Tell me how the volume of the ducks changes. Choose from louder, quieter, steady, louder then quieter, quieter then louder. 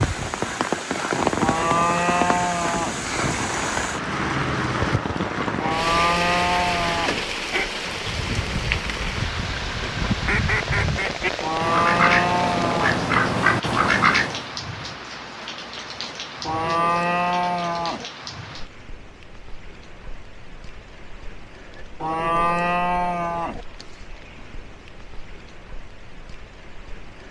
louder.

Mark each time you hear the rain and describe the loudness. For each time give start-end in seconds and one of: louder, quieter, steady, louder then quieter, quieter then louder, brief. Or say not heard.
0.0-27.2 quieter.